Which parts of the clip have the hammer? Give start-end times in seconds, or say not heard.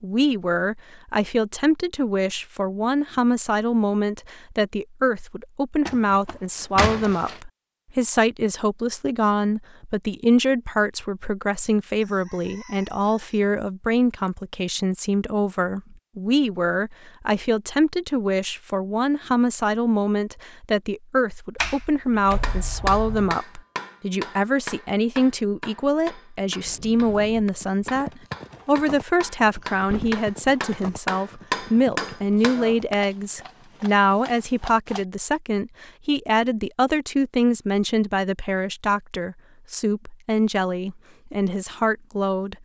22.3-33.0.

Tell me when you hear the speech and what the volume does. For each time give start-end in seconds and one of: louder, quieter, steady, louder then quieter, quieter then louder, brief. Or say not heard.
0.0-42.5 steady.